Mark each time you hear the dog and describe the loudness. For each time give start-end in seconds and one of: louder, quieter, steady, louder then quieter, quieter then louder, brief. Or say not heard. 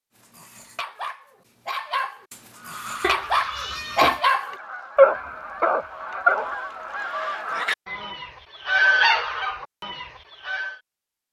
0.2-7.0 louder.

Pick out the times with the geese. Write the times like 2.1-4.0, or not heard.
2.5-10.8.